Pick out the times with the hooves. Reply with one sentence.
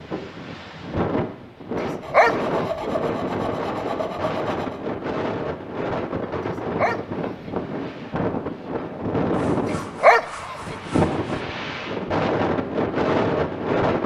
You can't hear the hooves here.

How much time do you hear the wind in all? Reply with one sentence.
You can hear the wind for 14 seconds altogether.